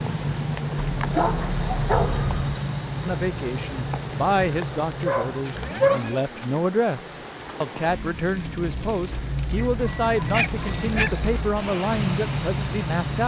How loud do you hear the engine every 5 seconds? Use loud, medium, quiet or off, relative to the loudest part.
loud, medium, loud.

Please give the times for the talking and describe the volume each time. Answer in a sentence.
The talking can be heard from 3.0 to 13.2 s, at a steady volume.